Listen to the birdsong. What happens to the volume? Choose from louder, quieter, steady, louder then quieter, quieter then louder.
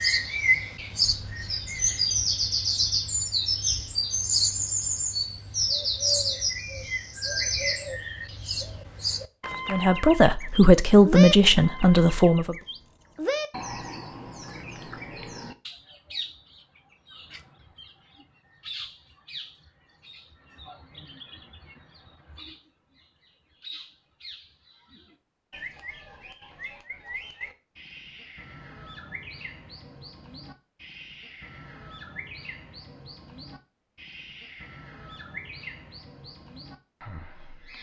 quieter.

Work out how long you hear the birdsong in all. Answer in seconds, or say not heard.
38 s.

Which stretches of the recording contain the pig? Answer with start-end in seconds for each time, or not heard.
not heard.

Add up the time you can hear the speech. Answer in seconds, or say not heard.
3 s.